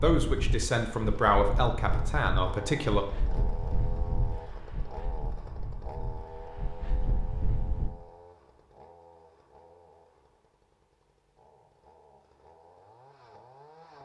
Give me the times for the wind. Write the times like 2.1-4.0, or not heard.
0.0-7.9.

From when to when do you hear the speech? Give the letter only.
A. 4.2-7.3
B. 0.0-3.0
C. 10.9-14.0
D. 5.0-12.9
B.